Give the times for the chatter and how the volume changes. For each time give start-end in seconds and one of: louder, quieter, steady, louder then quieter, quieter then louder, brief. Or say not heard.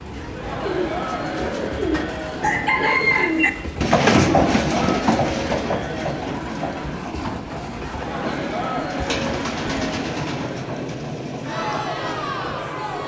0.1-13.0 steady.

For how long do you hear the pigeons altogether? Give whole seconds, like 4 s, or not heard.
12 s.